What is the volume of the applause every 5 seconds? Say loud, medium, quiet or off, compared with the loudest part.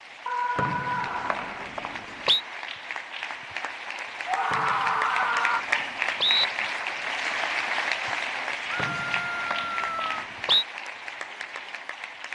medium, loud, medium.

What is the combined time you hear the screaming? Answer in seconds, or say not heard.
4 s.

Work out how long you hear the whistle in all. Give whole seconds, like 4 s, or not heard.
6 s.